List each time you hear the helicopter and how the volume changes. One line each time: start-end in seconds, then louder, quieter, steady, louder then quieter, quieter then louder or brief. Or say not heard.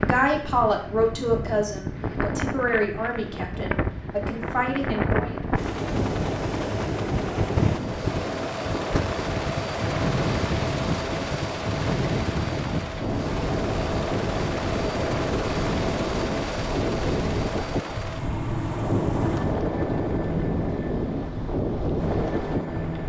5.5-23.0 steady.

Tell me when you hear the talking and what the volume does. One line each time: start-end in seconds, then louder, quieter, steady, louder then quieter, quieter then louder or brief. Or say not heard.
0.0-5.3 quieter then louder.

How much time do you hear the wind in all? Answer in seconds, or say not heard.
23 s.